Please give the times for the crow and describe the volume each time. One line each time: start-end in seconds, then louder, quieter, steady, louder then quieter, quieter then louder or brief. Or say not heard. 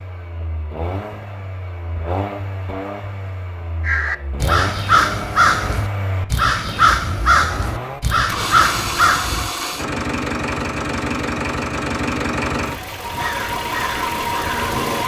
3.9-9.5 steady
13.1-15.0 brief.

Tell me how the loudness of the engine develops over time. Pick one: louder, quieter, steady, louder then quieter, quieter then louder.
louder.